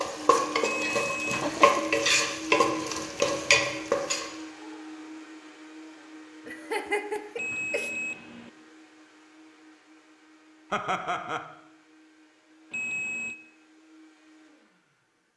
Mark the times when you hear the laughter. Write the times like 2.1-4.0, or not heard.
0.8-1.8, 6.5-7.9, 10.7-11.4.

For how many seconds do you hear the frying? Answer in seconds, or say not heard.
4 s.